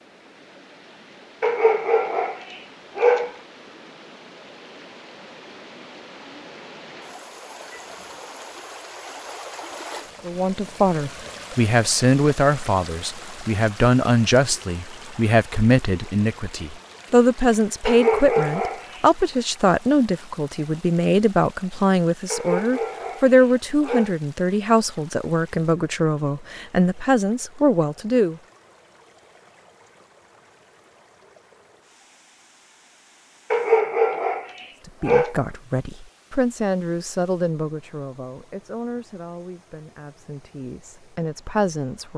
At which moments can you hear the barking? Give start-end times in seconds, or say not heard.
1.4-3.4, 17.9-19.0, 22.3-24.1, 33.5-35.4.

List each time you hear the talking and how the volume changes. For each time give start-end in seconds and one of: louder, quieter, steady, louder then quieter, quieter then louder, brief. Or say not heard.
10.2-28.4 steady
34.9-42.1 quieter then louder.